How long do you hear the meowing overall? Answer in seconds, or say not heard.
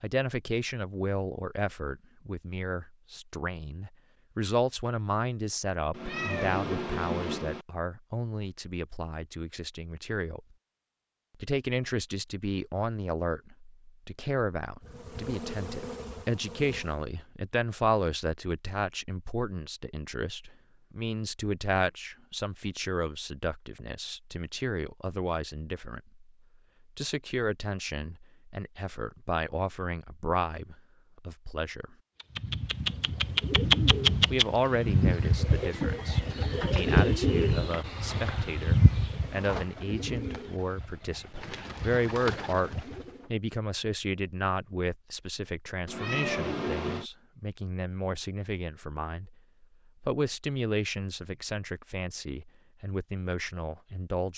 3 s.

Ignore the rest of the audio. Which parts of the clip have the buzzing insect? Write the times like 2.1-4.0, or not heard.
14.8-17.1.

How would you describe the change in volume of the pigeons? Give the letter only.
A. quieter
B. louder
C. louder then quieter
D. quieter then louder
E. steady
A.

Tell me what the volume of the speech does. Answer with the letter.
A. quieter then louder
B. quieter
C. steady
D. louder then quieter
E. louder
C.